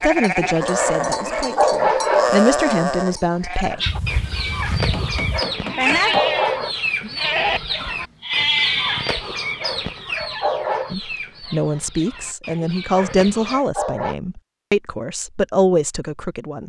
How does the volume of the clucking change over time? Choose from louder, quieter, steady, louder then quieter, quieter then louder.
quieter.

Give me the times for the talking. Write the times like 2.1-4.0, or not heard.
0.0-3.8, 10.9-16.6.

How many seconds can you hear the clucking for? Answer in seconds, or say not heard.
10 s.